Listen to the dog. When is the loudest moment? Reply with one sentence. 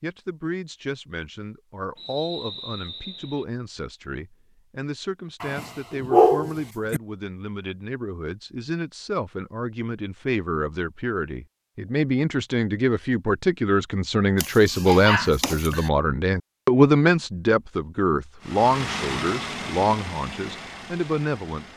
The volume of the dog peaks at 6 seconds.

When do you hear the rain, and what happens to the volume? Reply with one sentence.
The rain can't be heard in this clip.